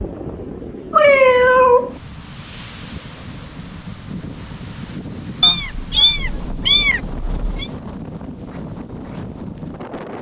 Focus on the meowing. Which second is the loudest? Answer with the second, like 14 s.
1 s.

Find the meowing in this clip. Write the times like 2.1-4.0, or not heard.
0.9-1.9, 5.4-7.7.